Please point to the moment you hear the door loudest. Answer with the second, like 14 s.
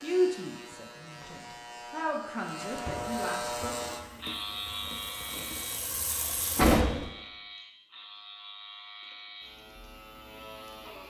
7 s.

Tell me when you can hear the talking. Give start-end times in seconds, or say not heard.
0.0-3.7.